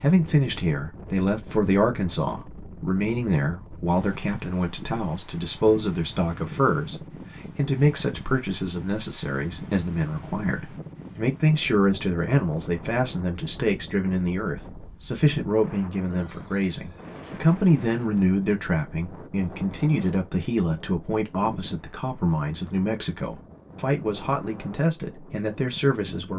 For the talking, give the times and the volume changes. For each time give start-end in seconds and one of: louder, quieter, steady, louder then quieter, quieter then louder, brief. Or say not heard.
0.0-26.3 steady.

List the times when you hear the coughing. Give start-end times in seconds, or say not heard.
not heard.